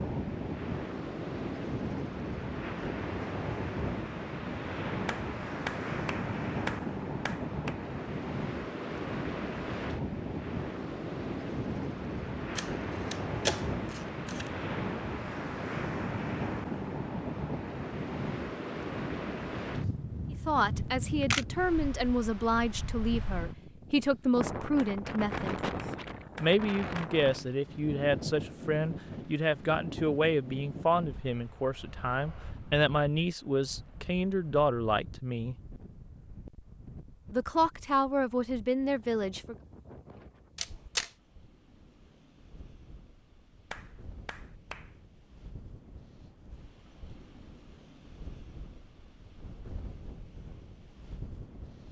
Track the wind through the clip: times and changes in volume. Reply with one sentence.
The wind can be heard from 0.0 to 51.8 s, getting quieter.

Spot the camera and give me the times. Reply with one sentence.
You can hear the camera from 12.6 to 14.5 s, from 20.8 to 21.4 s and from 40.5 to 41.1 s.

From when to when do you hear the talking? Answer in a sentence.
You can hear the talking from 20.3 to 25.6 s, from 26.4 to 35.5 s and from 37.3 to 39.5 s.